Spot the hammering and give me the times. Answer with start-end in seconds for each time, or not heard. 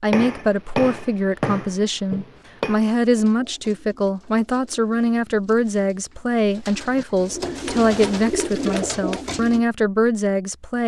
0.1-2.8, 7.5-9.2.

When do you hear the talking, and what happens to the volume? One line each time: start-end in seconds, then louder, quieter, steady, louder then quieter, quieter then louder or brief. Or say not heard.
0.0-10.8 steady.